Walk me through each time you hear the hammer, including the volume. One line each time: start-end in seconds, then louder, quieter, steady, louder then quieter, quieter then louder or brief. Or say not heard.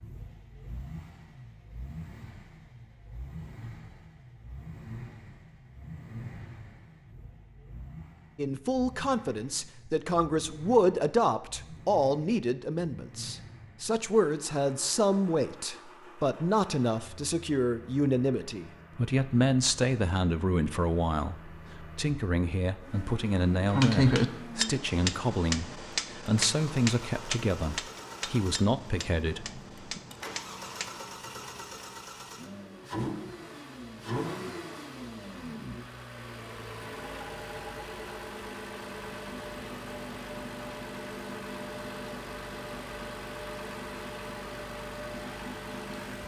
23.7-31.1 quieter.